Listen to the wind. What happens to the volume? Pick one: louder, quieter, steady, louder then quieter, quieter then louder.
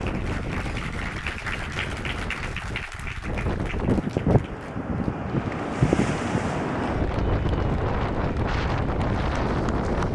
louder.